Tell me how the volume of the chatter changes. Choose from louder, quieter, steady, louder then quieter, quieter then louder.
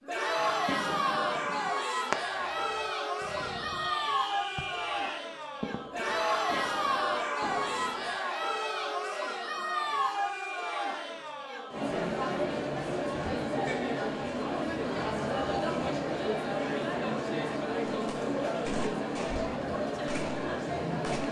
steady.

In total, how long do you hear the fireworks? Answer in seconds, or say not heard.
11 s.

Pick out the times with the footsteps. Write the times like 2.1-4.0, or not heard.
not heard.